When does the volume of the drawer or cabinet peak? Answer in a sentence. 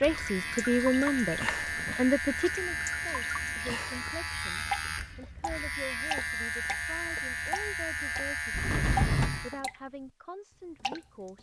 The loudest moment of the drawer or cabinet is at 9 seconds.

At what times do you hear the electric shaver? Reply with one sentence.
You can hear the electric shaver from 0.0 to 9.6 s.